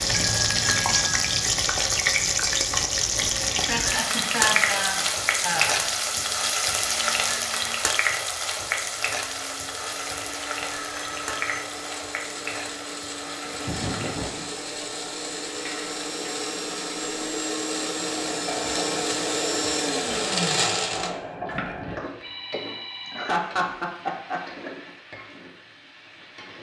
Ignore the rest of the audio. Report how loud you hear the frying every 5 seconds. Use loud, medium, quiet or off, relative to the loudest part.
loud, loud, medium, quiet, quiet, quiet.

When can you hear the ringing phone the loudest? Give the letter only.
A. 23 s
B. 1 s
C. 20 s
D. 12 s
B.